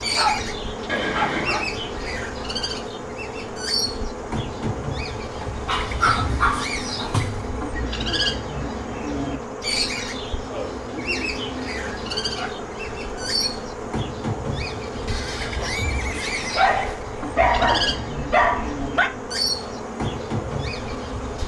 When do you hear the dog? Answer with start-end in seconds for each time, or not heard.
0.1-1.8, 5.4-7.5, 11.8-13.5, 16.6-19.1.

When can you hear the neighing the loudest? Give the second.
1 s.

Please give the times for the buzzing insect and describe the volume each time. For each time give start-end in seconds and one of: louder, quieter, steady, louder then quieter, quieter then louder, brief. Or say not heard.
0.0-21.4 steady.